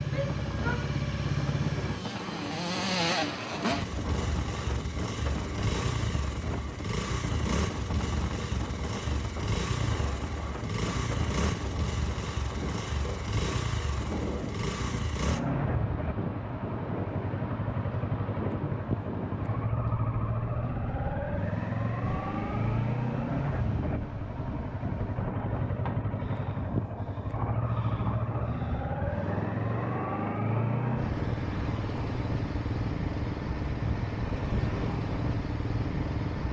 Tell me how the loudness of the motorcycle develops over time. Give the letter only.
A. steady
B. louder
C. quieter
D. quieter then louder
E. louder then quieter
A.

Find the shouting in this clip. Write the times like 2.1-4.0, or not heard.
0.1-0.9.